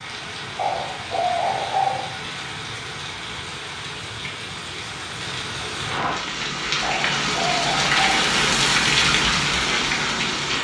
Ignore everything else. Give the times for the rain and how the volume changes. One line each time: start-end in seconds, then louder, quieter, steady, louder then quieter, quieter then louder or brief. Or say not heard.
0.0-10.5 louder.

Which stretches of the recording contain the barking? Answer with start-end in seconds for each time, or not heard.
0.6-2.1, 6.8-8.2.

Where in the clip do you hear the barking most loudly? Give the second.
2 s.